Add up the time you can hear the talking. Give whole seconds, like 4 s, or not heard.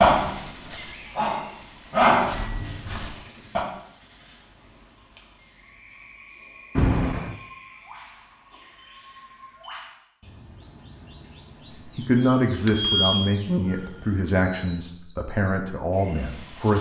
5 s.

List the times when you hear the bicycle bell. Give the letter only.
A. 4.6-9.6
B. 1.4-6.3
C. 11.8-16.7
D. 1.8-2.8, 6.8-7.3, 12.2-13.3
D.